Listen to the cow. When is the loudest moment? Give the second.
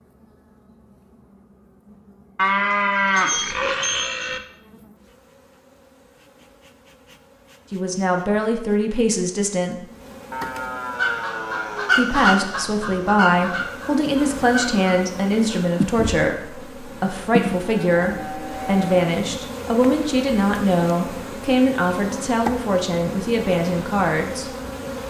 3 s.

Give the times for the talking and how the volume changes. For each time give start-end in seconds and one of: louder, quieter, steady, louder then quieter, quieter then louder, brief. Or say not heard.
7.7-9.8 brief
11.9-24.5 steady.